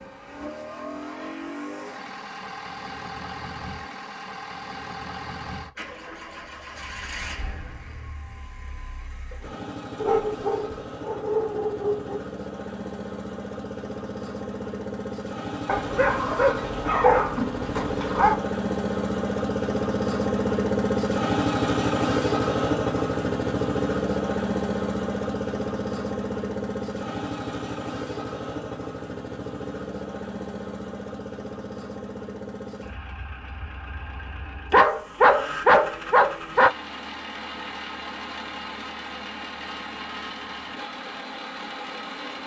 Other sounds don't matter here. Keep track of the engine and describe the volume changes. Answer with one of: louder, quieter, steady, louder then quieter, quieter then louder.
louder then quieter.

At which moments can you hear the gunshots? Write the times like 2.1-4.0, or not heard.
not heard.